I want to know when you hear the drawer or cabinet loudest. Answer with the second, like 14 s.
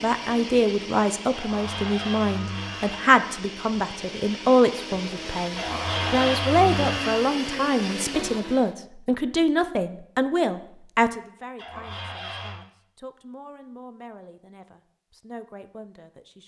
6 s.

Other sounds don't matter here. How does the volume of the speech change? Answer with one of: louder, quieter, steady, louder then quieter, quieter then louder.
quieter.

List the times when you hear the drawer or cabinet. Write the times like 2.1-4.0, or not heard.
1.4-3.0, 5.5-7.3, 11.6-12.6.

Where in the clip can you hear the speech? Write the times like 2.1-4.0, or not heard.
0.0-16.4.